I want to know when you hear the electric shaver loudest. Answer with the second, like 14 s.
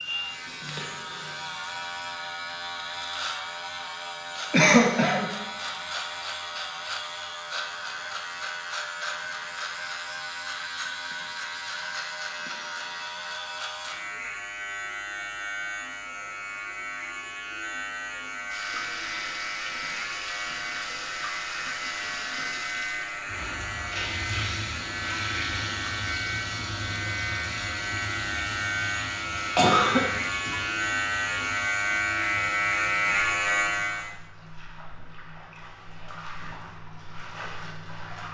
33 s.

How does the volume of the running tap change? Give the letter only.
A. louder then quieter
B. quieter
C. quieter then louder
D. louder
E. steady
B.